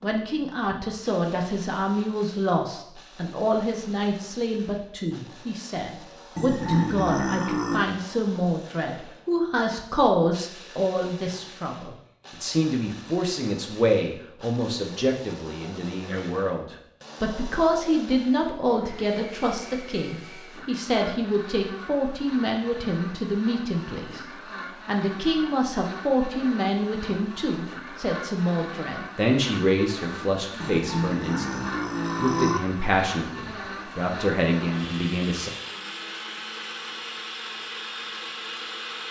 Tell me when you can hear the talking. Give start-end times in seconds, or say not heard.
0.0-24.2, 24.9-35.5.